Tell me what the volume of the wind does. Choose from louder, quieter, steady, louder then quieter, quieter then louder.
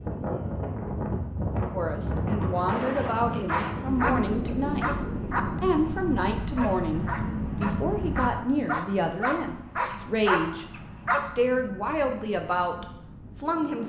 quieter.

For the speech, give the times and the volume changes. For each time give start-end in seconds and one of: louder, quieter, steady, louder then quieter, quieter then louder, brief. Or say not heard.
1.7-13.8 steady.